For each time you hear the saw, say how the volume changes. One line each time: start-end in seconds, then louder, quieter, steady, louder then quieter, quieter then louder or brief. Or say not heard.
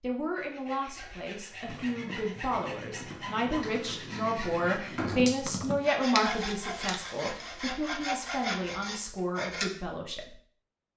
0.3-9.7 louder.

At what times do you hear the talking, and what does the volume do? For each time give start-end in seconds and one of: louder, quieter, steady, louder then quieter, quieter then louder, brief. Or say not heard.
0.0-10.3 louder then quieter.